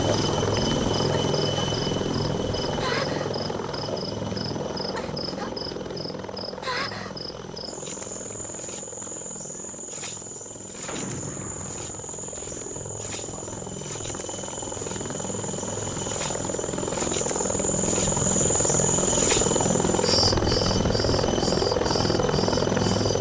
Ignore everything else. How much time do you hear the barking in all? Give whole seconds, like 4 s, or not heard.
not heard.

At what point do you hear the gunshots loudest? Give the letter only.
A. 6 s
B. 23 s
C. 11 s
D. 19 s
C.